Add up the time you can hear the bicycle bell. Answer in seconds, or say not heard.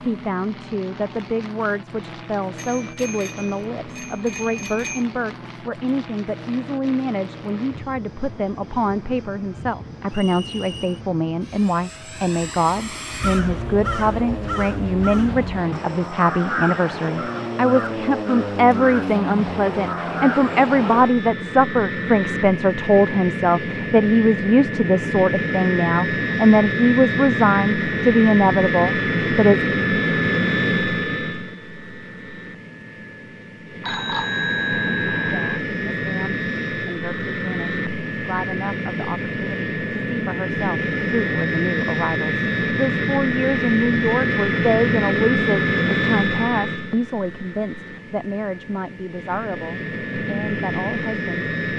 4 s.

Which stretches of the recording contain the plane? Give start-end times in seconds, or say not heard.
0.0-51.7.